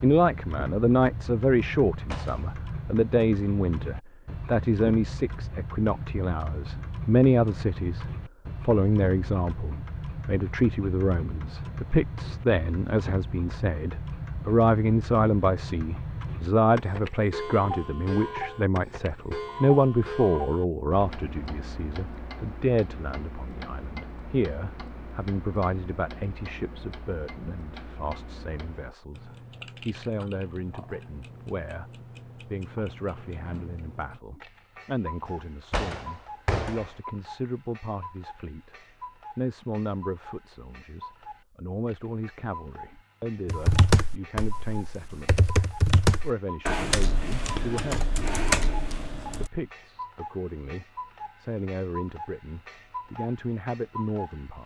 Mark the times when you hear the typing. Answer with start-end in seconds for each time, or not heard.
43.5-49.5.